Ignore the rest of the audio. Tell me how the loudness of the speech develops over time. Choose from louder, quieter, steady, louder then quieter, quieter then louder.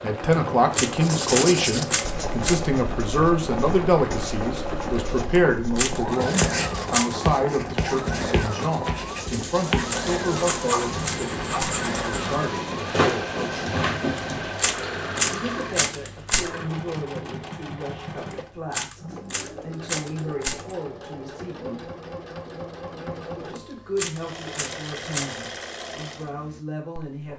quieter.